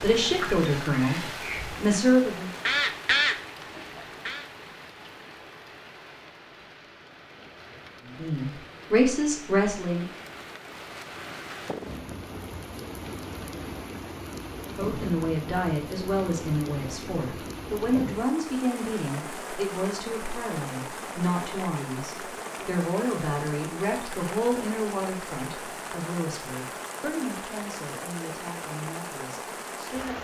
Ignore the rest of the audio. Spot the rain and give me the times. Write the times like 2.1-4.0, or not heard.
0.0-30.1.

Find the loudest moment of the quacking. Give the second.
3 s.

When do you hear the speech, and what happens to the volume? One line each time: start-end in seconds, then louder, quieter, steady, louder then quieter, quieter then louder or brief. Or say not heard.
0.0-2.5 brief
8.2-10.1 brief
14.7-30.1 quieter.